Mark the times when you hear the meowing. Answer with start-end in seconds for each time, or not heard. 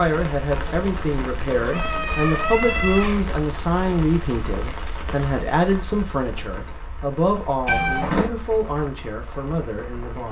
0.7-3.2, 7.7-8.3.